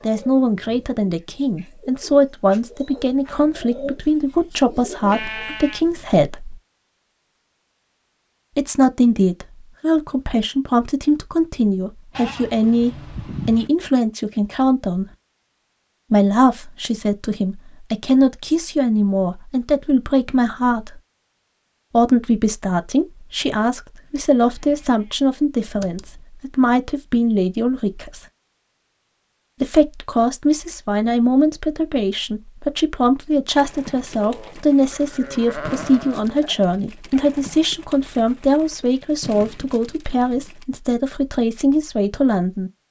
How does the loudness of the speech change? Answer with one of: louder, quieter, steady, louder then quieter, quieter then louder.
steady.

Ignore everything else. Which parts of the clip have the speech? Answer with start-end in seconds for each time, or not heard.
0.0-6.6, 8.6-15.1, 16.1-21.0, 21.9-28.2, 29.6-42.7.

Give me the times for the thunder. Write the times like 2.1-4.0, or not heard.
not heard.